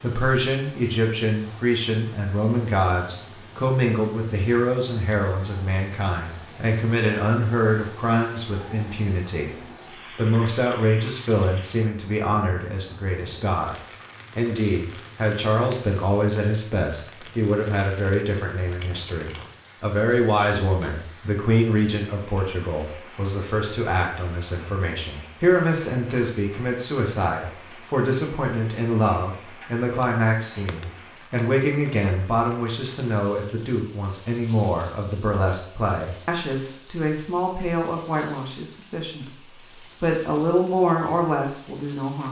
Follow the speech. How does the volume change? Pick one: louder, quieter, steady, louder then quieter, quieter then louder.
steady.